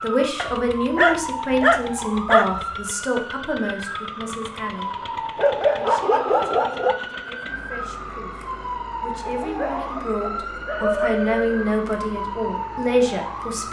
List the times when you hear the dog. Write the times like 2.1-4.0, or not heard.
0.3-2.6, 5.3-7.0, 9.2-11.7.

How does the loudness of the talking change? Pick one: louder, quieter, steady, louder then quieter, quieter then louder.
quieter then louder.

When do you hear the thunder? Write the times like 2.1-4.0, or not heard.
not heard.